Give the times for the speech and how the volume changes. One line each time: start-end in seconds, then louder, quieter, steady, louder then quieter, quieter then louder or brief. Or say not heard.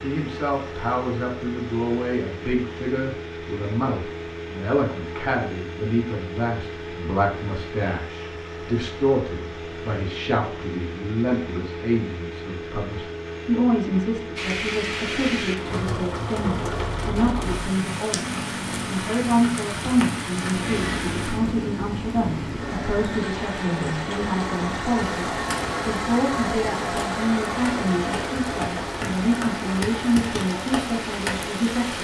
0.0-32.0 steady.